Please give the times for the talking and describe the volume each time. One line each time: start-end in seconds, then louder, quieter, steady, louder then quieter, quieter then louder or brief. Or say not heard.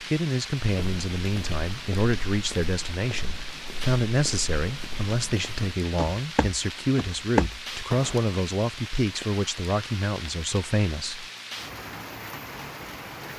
0.1-11.2 steady.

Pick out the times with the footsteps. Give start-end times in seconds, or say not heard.
0.7-8.3.